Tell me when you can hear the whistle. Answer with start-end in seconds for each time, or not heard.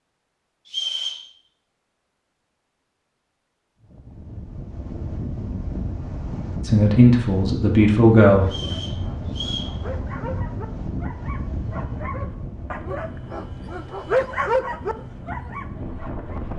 0.7-1.2, 8.4-9.8.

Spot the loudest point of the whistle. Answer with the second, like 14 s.
1 s.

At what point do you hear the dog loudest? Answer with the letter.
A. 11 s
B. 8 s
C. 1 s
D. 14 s
D.